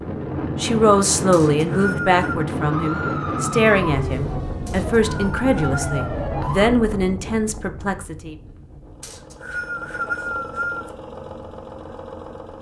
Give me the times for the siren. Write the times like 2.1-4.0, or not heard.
2.7-6.7.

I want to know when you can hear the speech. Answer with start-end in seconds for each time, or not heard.
0.6-8.3.